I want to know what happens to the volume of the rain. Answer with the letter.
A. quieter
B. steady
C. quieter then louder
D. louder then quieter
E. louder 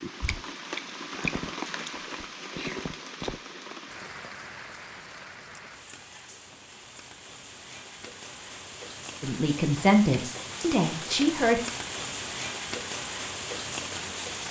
C.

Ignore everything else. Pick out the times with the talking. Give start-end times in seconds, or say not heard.
9.2-11.6.